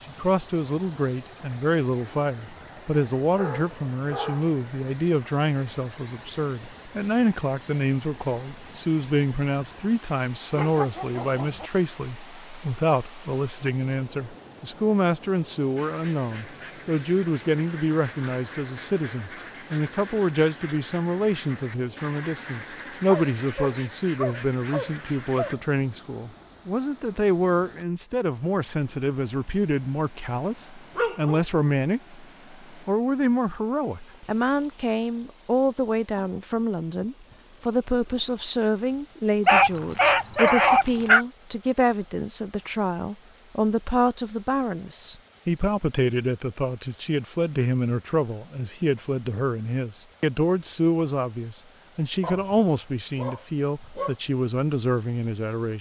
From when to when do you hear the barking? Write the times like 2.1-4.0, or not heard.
3.2-4.5, 10.6-11.7, 23.1-25.6, 30.9-31.4, 39.5-41.2, 52.2-54.1.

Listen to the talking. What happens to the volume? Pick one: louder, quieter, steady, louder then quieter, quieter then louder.
steady.